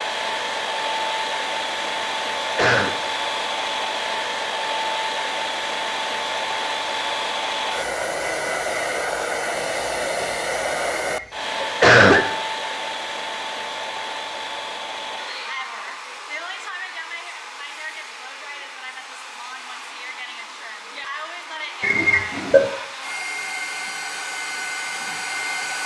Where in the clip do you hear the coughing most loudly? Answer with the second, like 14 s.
12 s.